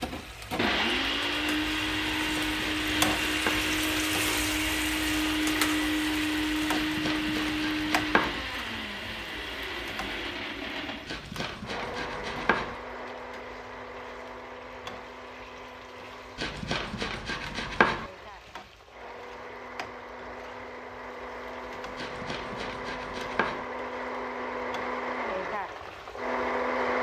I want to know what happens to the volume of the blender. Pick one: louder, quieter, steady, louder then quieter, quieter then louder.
quieter then louder.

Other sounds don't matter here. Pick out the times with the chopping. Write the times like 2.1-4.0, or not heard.
2.0-3.8, 6.7-8.4, 11.1-12.8, 16.4-18.1, 21.9-23.6.